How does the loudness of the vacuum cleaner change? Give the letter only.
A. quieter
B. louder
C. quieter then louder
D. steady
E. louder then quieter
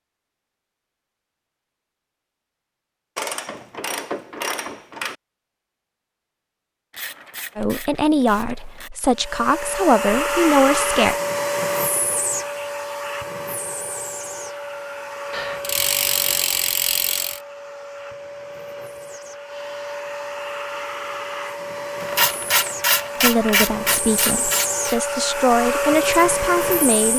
C.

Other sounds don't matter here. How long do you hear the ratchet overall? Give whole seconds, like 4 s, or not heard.
9 s.